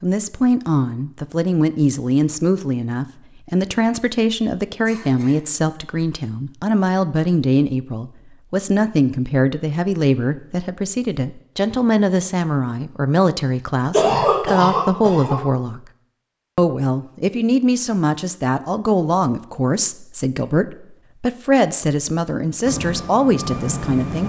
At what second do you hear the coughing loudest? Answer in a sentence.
The volume of the coughing peaks at 14 seconds.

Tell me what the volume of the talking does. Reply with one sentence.
The volume of the talking stays about the same.